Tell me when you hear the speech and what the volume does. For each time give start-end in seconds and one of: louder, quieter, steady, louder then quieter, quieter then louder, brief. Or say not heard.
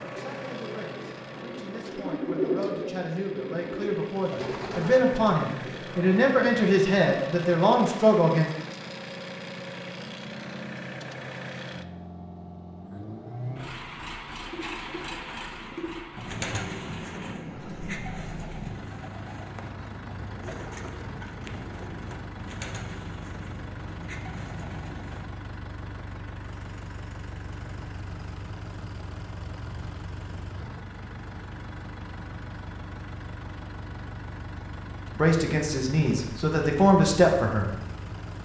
0.0-8.5 louder
35.1-37.7 brief.